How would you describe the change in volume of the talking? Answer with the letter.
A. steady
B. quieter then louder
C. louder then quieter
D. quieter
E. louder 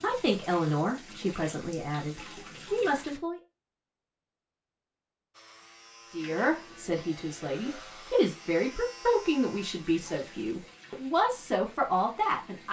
A.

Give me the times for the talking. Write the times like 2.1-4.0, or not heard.
0.0-3.4, 6.1-12.6.